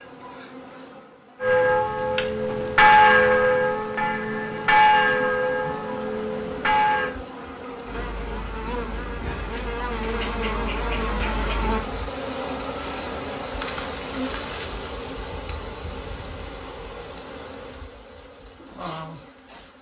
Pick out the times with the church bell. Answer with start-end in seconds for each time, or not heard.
1.4-7.2.